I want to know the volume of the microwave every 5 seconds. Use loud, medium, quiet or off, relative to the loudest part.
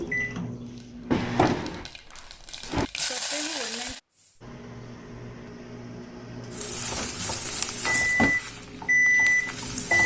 medium, loud.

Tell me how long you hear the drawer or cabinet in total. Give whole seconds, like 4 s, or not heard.
3 s.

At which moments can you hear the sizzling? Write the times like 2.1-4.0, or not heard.
0.0-4.3, 6.5-10.0.